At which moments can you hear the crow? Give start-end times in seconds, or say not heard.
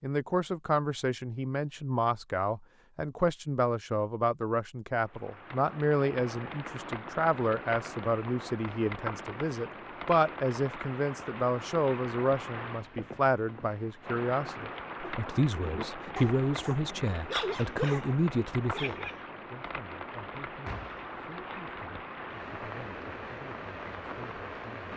not heard.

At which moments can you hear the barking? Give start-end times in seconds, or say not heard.
15.0-19.2.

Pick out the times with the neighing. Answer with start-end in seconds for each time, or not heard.
20.6-21.1.